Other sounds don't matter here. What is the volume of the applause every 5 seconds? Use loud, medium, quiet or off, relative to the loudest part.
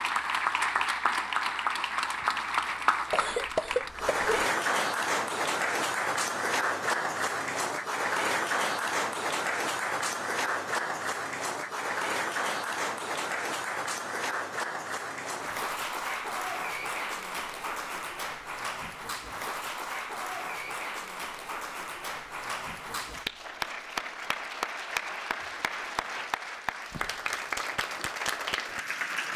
loud, loud, loud, medium, medium, medium.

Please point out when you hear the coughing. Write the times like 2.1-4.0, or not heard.
3.1-4.3.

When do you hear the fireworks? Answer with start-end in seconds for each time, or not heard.
not heard.